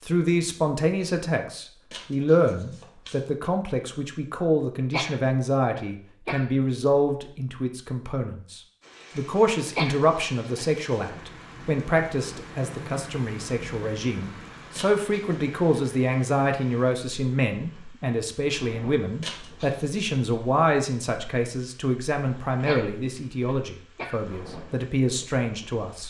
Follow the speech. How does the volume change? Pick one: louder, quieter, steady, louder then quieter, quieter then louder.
steady.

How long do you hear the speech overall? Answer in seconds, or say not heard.
26 s.